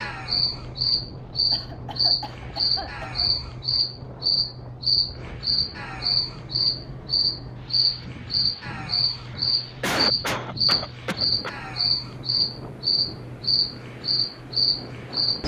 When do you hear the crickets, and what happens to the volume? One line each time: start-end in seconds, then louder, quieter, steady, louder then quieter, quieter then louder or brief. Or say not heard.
0.0-15.4 steady.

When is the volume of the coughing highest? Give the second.
10 s.